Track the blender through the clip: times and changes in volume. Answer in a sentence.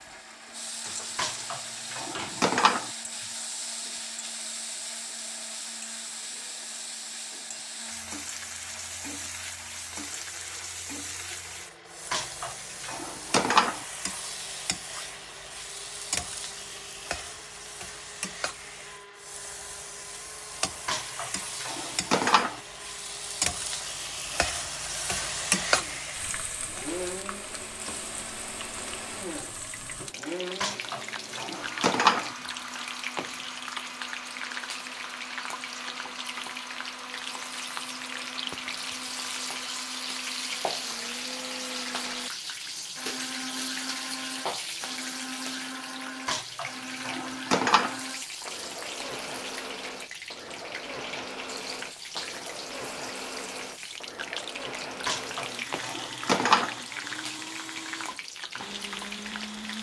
You can hear the blender from 0.0 to 59.7 s, getting louder.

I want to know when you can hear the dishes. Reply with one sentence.
The dishes can be heard from 1.1 to 2.9 s, from 12.1 to 13.8 s, from 20.9 to 22.6 s, from 30.6 to 32.4 s, from 46.2 to 48.0 s and from 55.0 to 56.8 s.